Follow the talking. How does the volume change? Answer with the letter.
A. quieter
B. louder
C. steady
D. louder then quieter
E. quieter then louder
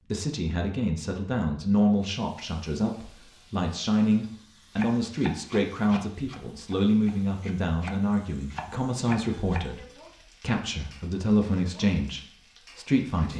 C.